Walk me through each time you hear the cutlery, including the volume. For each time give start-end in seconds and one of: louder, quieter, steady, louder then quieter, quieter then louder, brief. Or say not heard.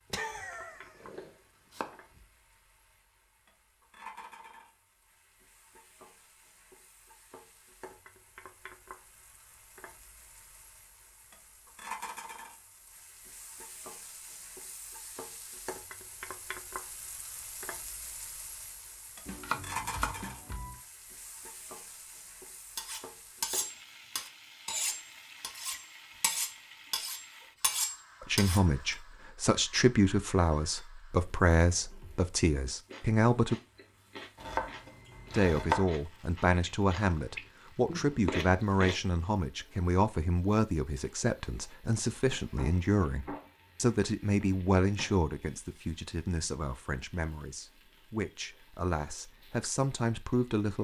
22.8-28.6 quieter then louder.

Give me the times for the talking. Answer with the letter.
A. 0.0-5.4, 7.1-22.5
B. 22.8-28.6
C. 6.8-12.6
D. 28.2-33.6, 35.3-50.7
D.